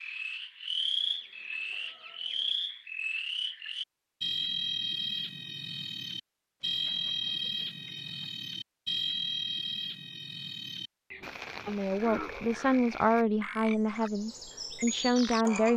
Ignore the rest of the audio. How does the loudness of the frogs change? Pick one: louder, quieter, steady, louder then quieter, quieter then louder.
quieter.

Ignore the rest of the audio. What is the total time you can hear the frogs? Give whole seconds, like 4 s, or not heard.
16 s.